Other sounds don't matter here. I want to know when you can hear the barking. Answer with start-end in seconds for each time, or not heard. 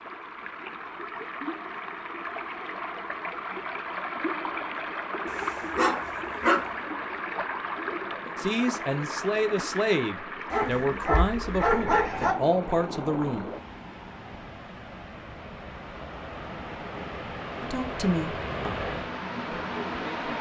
5.3-6.7, 10.5-12.3.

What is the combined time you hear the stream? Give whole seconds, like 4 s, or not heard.
20 s.